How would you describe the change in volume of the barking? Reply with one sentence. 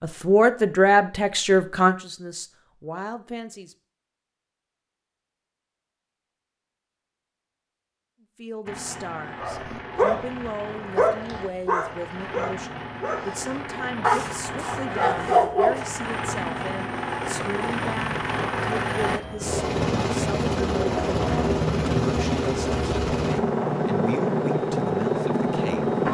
The loudness of the barking goes down, then up.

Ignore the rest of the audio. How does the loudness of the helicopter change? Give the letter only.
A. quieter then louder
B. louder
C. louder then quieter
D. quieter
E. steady
B.